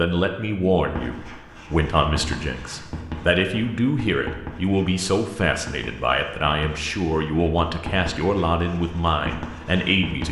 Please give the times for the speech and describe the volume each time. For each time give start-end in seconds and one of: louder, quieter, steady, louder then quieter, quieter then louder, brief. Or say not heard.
0.0-10.2 steady.